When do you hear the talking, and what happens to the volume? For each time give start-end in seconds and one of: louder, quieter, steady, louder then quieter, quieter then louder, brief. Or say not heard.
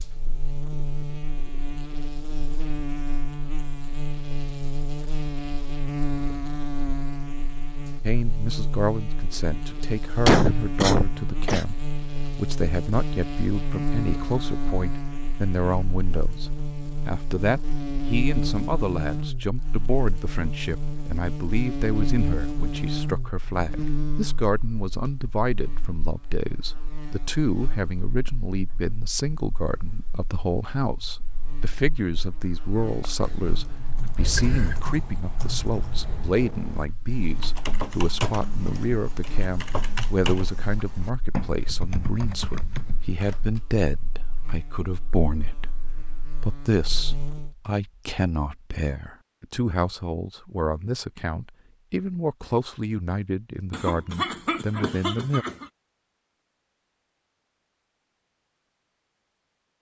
8.0-55.5 steady.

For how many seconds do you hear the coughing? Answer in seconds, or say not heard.
4 s.